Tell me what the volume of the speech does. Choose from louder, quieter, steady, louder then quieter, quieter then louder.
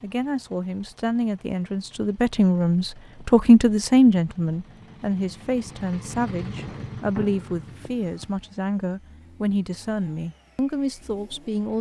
louder then quieter.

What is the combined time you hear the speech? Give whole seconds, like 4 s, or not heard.
12 s.